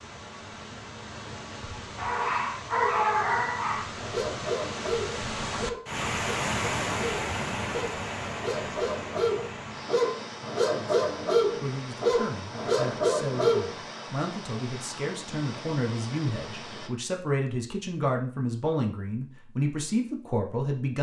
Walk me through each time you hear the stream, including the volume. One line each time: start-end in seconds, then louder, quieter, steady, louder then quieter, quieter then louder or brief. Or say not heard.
0.0-16.9 louder then quieter.